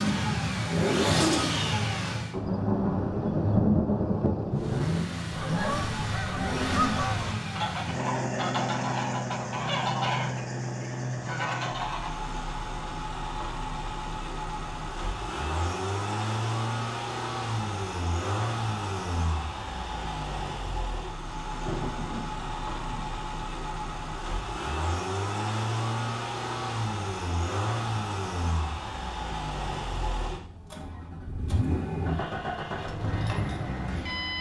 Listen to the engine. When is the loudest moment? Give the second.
1 s.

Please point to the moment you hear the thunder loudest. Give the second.
4 s.